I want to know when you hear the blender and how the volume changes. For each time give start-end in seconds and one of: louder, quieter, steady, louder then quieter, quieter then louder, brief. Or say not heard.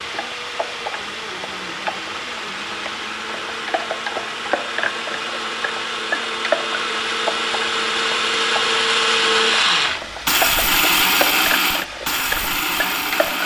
0.0-13.4 louder.